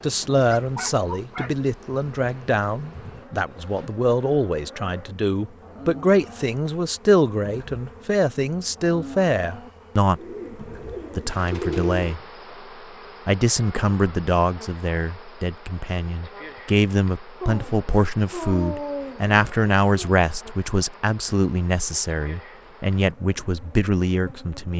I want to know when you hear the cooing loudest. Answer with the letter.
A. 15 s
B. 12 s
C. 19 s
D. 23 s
B.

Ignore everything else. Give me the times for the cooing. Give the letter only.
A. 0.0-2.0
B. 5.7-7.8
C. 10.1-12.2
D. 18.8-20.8
C.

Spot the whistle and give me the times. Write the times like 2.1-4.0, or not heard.
not heard.